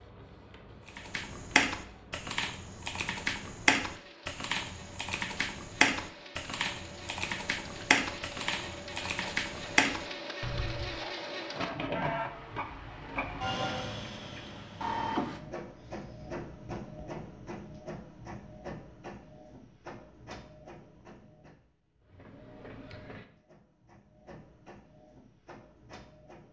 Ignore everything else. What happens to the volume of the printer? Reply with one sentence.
The loudness of the printer goes up, then down.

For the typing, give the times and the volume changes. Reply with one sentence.
The typing can be heard from 0.9 to 10.9 s, at a steady volume.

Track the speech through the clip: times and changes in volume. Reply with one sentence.
You can't hear the speech here.